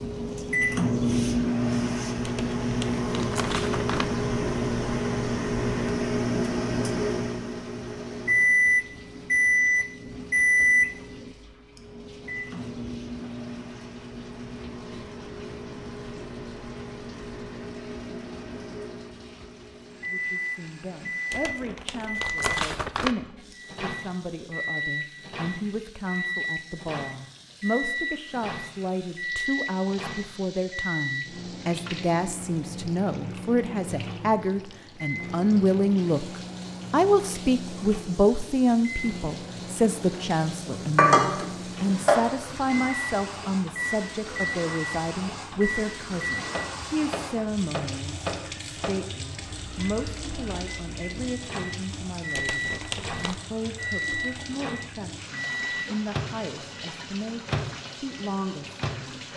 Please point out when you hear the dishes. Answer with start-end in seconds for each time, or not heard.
41.0-42.9.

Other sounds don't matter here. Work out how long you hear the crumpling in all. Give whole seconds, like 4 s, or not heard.
5 s.